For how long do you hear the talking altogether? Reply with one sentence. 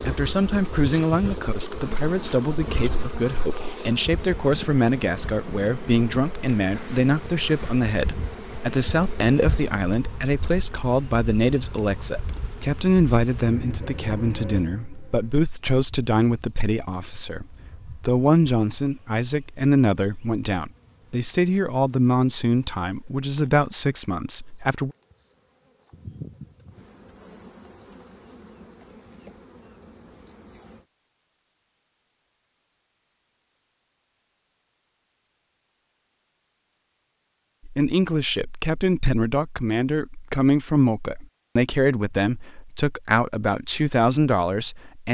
The talking can be heard for 32 seconds in total.